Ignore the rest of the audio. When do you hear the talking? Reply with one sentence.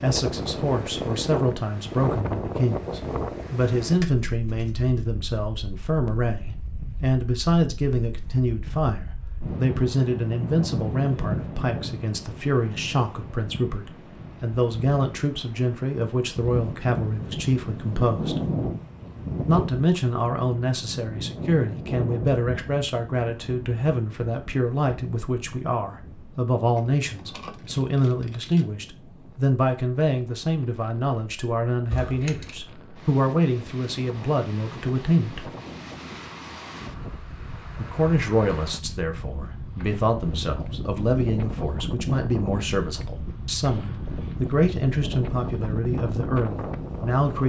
You can hear the talking from 0.0 to 18.4 s, from 19.4 to 35.5 s and from 37.8 to 47.4 s.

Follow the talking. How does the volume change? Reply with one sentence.
The loudness of the talking stays about the same.